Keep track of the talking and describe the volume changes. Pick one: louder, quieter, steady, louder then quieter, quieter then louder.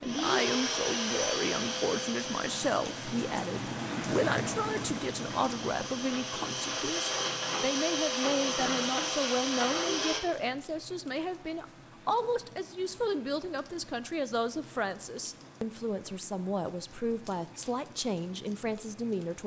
steady.